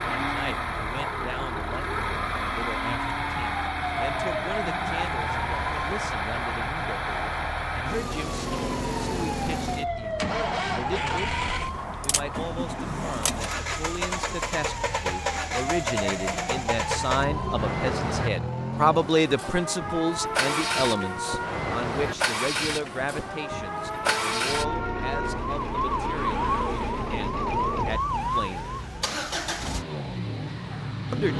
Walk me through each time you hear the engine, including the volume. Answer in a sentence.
You can hear the engine from 0.0 to 31.3 s, at a steady volume.